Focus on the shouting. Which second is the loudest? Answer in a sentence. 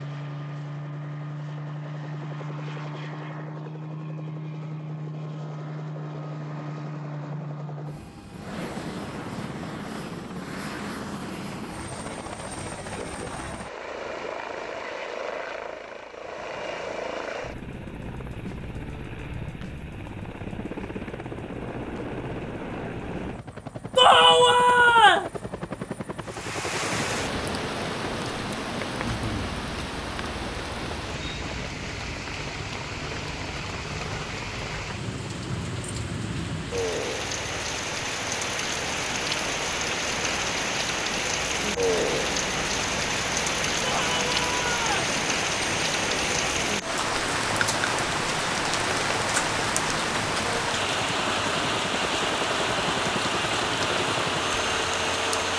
The loudest moment of the shouting is at 24 seconds.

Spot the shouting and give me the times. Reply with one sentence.
You can hear the shouting from 23.9 to 25.3 s and from 43.8 to 45.0 s.